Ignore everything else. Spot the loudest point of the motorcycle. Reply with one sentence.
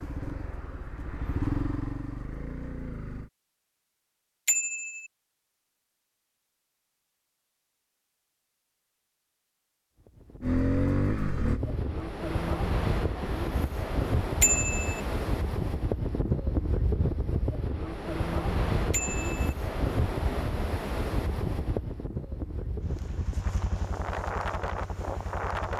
The volume of the motorcycle peaks at 11 seconds.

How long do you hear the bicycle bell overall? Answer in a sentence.
You can hear the bicycle bell for 2 seconds altogether.